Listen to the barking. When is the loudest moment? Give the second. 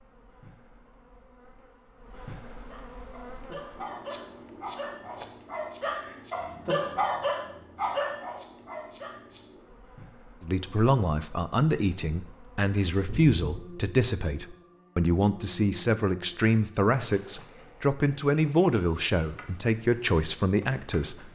7 s.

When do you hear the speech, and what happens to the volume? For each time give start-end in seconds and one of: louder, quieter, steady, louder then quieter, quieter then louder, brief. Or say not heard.
10.4-21.2 steady.